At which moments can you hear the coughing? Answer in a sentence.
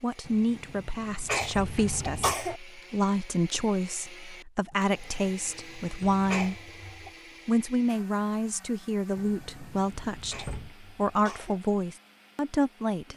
You can hear the coughing from 1.2 to 2.6 s, from 6.2 to 7.1 s and from 10.3 to 11.6 s.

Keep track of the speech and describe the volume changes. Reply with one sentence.
The volume of the speech stays about the same.